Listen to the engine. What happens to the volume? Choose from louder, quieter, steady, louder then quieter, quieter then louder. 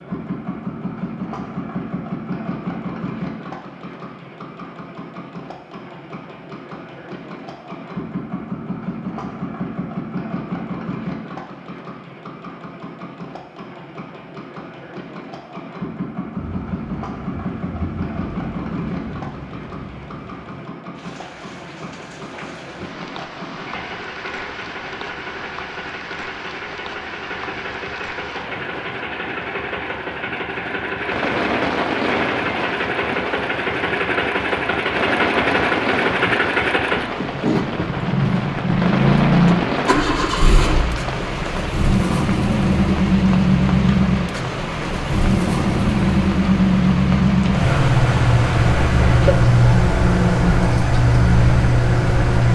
louder.